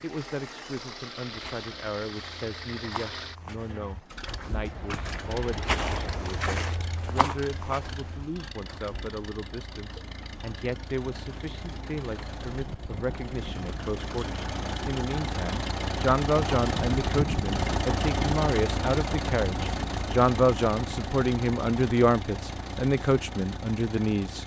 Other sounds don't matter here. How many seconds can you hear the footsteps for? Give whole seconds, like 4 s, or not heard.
8 s.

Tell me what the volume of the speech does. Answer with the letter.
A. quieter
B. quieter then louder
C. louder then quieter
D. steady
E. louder
E.